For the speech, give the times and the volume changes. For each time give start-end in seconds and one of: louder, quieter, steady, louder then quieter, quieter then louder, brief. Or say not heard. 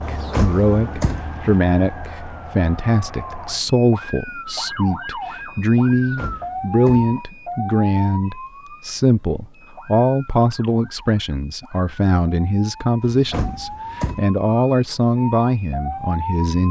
0.1-16.6 steady.